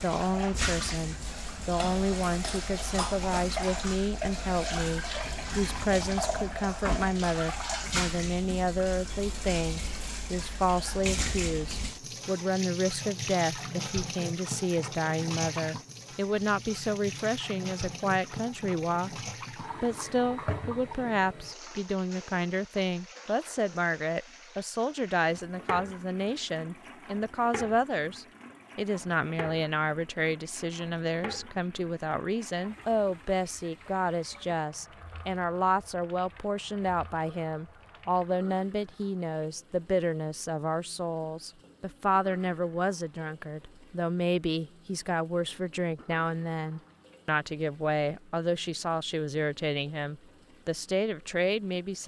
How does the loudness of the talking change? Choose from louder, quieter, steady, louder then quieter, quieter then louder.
steady.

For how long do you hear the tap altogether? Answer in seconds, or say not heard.
52 s.